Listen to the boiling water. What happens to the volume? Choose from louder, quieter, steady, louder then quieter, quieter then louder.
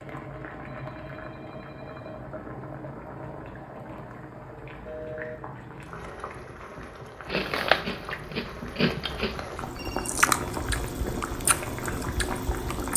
louder.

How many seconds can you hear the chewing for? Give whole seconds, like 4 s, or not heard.
6 s.